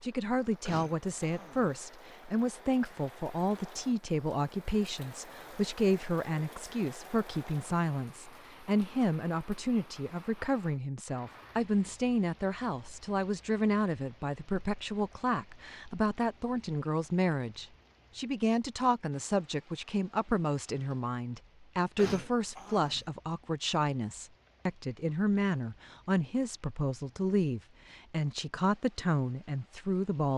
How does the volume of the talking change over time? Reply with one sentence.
The loudness of the talking stays about the same.